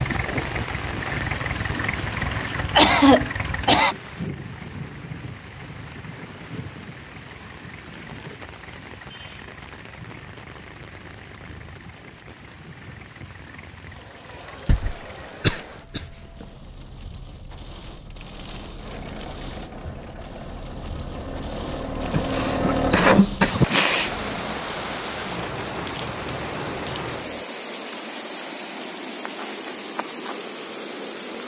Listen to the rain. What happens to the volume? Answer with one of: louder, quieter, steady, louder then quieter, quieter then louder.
quieter then louder.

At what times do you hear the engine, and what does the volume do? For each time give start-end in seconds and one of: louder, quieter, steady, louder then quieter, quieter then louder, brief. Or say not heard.
0.0-15.3 quieter
18.8-27.4 louder then quieter.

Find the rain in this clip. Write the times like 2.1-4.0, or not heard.
0.0-31.4.